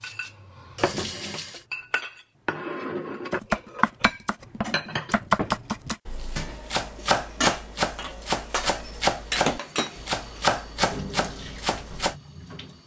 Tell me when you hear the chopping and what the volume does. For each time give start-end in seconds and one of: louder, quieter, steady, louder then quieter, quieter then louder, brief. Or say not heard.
3.3-12.2 steady.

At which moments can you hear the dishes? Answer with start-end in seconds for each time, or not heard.
0.0-10.4.